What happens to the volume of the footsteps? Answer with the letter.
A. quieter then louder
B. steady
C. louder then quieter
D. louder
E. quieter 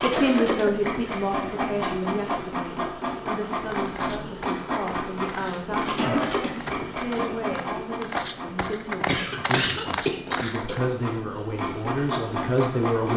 D.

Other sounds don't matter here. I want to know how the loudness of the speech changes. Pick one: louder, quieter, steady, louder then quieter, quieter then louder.
quieter then louder.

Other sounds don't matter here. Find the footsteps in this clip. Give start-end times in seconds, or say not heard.
3.5-10.8.